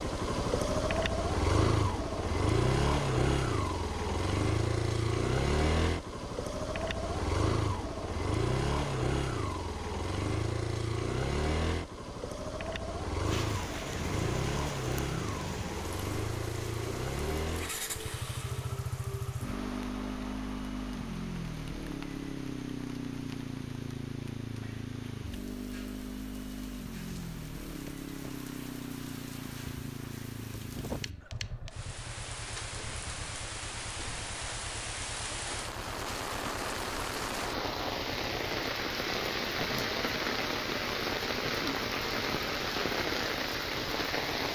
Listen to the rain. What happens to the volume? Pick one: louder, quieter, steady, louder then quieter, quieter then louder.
quieter then louder.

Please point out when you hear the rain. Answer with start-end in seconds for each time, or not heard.
13.2-44.4.